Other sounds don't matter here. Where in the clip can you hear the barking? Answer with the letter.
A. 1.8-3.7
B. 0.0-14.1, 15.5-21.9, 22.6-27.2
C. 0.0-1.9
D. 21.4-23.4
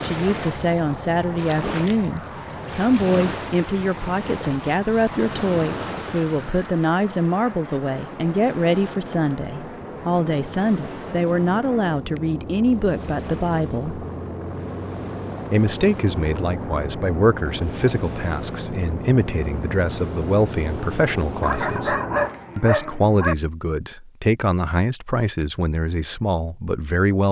D.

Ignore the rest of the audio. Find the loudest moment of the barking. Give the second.
22 s.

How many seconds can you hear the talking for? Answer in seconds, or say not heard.
25 s.